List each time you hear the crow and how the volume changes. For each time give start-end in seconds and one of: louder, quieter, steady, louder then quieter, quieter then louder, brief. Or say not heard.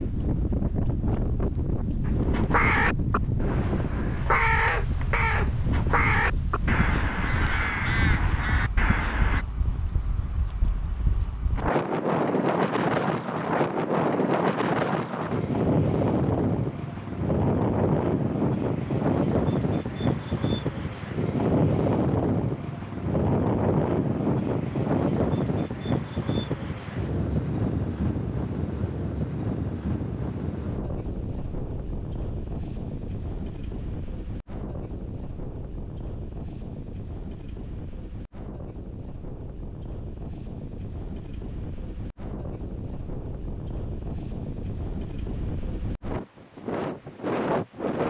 2.0-9.4 steady.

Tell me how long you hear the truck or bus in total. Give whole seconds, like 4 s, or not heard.
not heard.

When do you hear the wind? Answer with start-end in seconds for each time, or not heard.
0.0-48.0.